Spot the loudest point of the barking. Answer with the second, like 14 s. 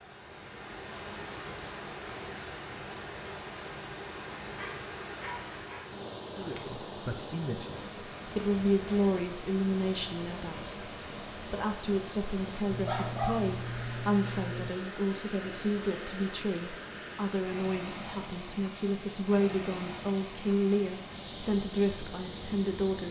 13 s.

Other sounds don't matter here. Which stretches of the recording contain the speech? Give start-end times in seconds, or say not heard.
6.3-23.0.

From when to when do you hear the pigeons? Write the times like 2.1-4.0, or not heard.
not heard.